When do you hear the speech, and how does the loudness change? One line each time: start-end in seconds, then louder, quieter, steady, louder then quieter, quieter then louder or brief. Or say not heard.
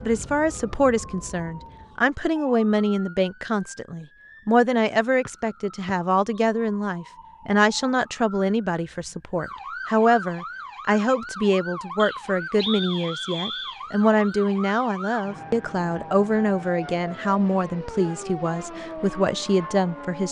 0.0-20.2 steady.